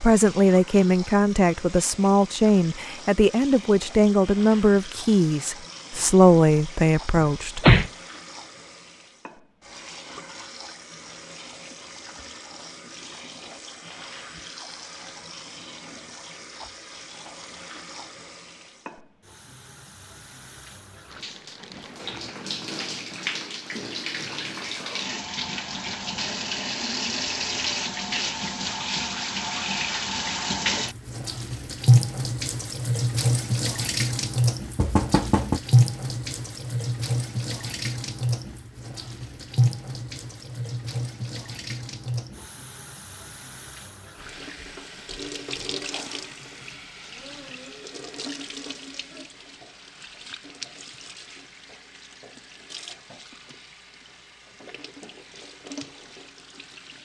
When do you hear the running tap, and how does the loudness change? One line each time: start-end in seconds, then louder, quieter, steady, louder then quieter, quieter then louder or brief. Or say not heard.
0.0-57.0 louder then quieter.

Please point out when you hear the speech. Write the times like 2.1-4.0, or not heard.
0.0-7.7.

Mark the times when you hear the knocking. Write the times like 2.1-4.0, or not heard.
7.2-7.9, 34.8-35.6.